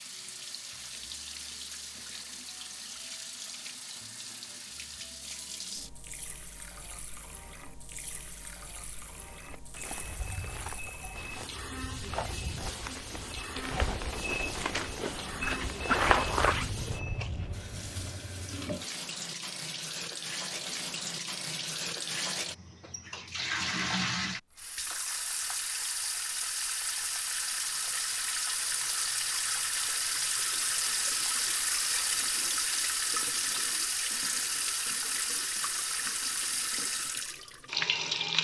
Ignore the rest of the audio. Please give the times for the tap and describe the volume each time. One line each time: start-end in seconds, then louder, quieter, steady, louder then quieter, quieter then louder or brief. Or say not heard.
0.0-38.3 louder.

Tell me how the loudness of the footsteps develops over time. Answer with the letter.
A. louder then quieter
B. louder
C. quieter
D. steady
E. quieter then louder
B.